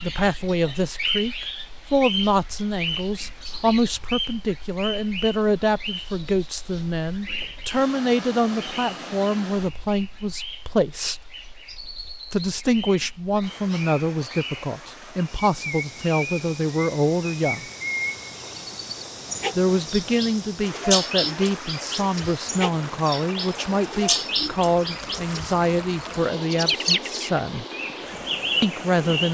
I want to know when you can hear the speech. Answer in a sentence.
You can hear the speech from 0.0 to 11.2 s, from 12.3 to 17.6 s, from 19.6 to 27.6 s and from 28.6 to 29.2 s.